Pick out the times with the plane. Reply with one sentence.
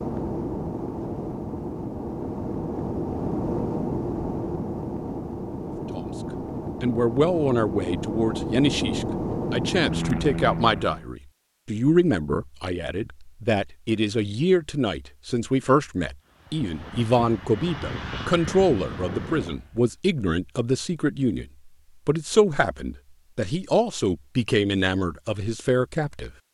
You can hear the plane from 0.0 to 11.1 s and from 16.2 to 19.9 s.